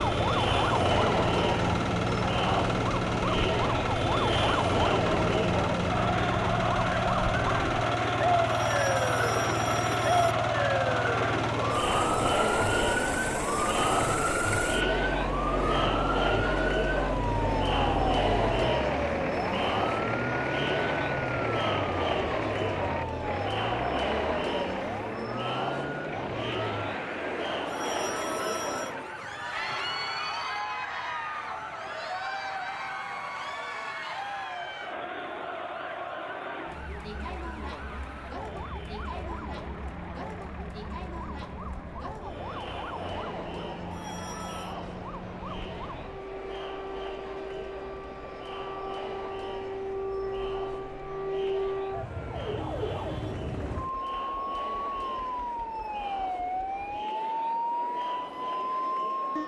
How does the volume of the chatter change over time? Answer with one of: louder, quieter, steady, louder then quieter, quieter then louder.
quieter.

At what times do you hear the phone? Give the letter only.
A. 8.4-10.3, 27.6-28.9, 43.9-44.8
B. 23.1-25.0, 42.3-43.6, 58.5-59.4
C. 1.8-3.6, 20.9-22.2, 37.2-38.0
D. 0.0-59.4
A.